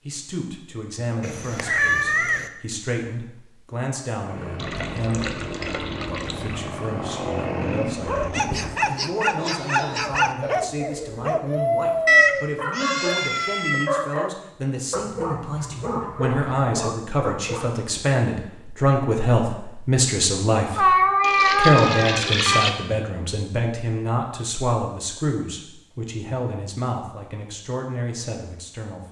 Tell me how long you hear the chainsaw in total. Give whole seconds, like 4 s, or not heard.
5 s.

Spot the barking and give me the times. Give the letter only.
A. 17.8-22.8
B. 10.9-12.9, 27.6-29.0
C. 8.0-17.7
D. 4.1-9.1
C.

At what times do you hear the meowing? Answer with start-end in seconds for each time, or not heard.
1.2-2.5, 12.1-13.9, 20.8-22.6.